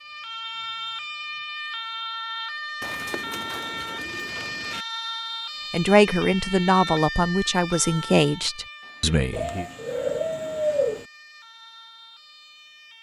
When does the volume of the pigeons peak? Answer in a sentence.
The volume of the pigeons peaks at 11 seconds.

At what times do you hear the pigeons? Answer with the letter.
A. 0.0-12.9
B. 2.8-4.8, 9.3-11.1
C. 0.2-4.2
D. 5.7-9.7
B.